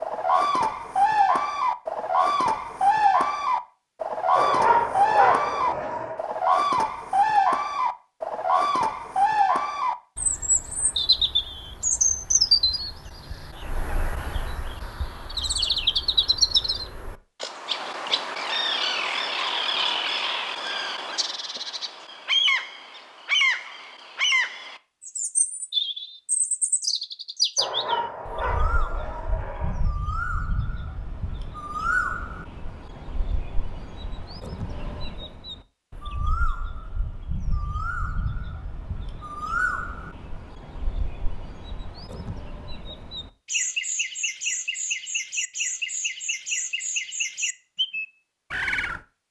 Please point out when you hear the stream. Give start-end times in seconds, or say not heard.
not heard.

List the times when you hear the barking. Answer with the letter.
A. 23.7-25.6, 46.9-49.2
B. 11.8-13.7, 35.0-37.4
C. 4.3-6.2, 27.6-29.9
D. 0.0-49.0
C.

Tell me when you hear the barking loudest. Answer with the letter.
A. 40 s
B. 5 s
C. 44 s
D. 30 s
B.